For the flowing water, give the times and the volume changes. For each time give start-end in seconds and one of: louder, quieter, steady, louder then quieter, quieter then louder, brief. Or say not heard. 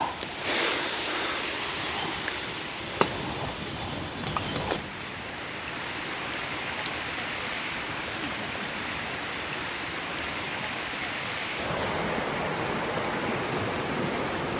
0.0-14.5 quieter then louder.